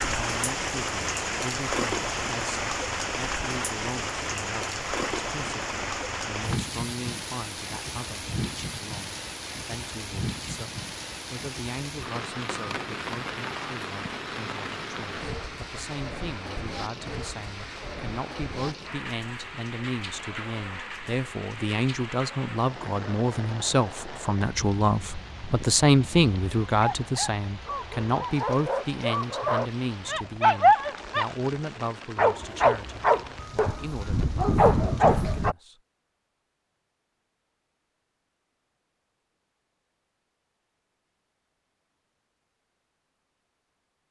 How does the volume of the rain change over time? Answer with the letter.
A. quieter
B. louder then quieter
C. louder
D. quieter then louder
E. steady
A.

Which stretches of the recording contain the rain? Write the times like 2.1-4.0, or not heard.
0.0-35.5.